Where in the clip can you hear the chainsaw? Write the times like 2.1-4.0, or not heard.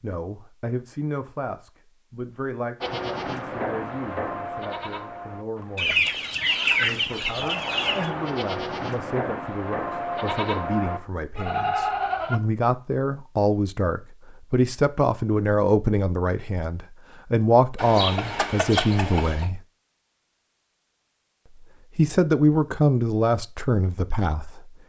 not heard.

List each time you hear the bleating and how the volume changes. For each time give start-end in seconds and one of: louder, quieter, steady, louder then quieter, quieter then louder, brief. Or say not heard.
2.8-12.4 quieter then louder.